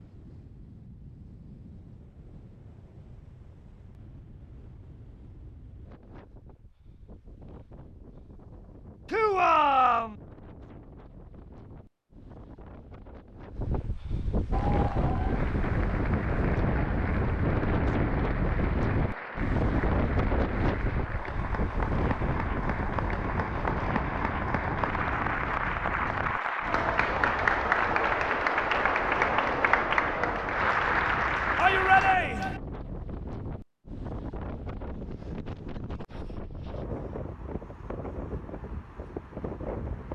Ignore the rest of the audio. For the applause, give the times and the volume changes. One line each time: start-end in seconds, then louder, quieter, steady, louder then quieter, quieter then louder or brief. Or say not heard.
14.5-32.1 louder.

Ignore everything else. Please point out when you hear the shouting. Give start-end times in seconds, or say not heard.
9.1-10.2, 31.6-32.6.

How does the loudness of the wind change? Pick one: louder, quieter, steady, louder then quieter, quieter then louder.
louder then quieter.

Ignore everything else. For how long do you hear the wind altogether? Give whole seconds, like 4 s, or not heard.
40 s.